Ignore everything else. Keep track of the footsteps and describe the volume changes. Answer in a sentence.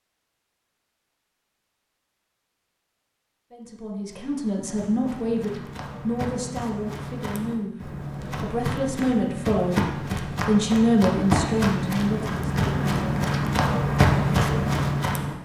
The loudness of the footsteps goes up.